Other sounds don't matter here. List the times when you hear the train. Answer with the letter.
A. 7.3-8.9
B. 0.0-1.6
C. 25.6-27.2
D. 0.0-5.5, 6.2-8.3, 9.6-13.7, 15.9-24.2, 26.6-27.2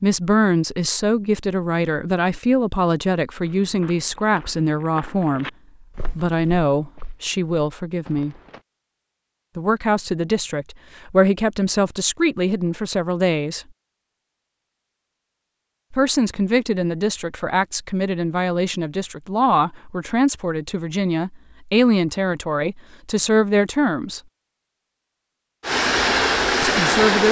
C.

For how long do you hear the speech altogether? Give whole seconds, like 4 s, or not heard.
21 s.